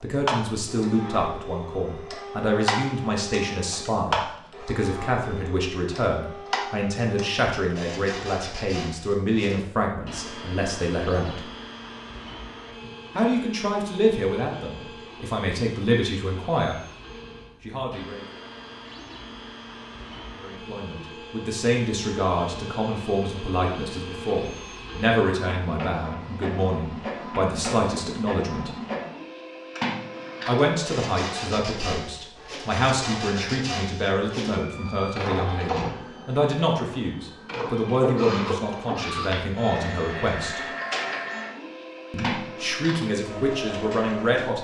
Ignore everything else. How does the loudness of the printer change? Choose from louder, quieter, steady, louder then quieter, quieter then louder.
quieter then louder.